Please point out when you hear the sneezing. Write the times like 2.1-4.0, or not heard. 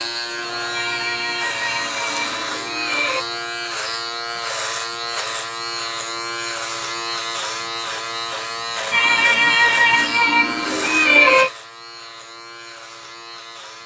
0.7-3.2, 8.9-11.5.